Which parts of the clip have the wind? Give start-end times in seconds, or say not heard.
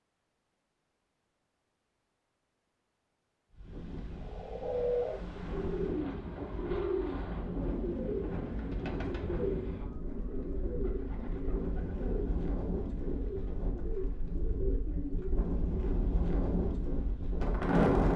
3.5-18.1.